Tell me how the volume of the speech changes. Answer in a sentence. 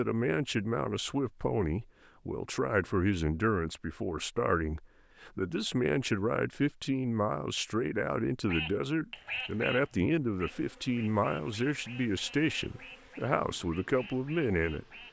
The volume of the speech stays about the same.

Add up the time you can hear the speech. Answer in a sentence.
You can hear the speech for 15 seconds altogether.